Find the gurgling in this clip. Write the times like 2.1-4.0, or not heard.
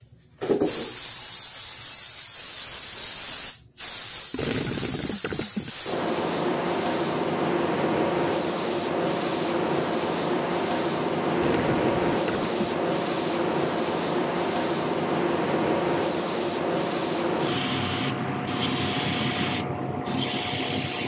4.3-5.7, 11.3-12.8.